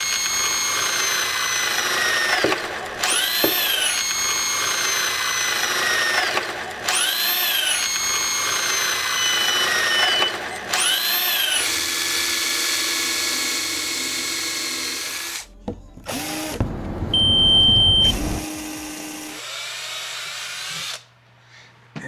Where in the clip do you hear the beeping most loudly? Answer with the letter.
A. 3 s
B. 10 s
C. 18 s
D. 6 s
C.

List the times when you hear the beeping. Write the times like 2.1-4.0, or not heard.
2.2-3.9, 9.2-11.0, 16.6-18.4.